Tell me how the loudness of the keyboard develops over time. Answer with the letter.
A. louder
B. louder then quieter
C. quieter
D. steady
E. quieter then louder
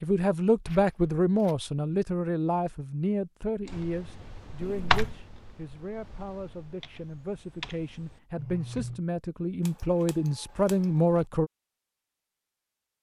E.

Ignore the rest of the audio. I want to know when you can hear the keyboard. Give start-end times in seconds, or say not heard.
3.6-9.0.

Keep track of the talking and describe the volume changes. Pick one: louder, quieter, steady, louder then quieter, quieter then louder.
quieter then louder.